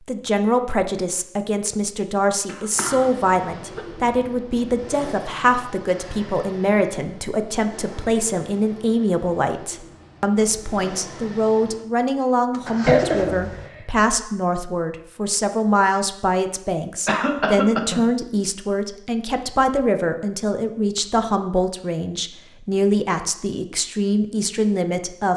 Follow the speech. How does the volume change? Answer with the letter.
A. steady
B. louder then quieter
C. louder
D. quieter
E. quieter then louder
A.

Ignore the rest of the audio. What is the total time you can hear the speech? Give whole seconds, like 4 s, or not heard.
25 s.